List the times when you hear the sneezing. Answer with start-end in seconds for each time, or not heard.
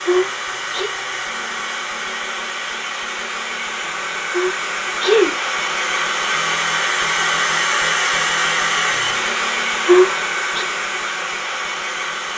0.1-0.9, 4.3-5.3, 9.8-10.7.